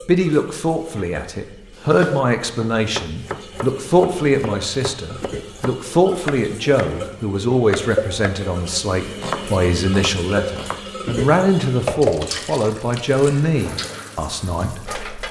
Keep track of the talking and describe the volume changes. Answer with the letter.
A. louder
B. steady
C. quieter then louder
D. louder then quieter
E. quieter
B.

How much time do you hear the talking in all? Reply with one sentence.
You can hear the talking for 15 seconds altogether.